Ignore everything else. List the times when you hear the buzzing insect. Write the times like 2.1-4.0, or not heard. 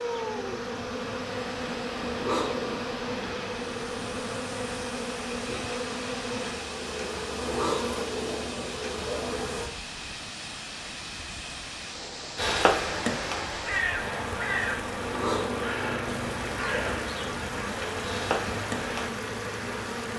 0.0-9.7, 13.9-20.1.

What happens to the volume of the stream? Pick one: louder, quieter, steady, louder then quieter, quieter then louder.
steady.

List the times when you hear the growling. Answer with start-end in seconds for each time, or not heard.
2.0-2.8, 7.3-9.4, 14.9-17.1.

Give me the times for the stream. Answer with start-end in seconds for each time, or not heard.
0.0-20.1.